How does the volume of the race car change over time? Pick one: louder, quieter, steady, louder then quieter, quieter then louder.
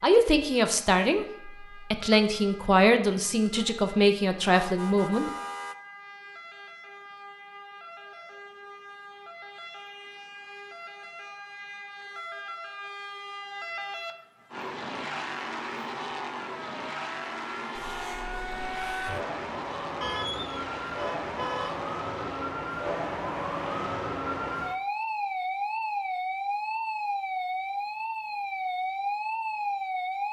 quieter.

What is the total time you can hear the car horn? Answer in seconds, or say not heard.
3 s.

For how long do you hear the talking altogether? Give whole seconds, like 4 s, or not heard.
5 s.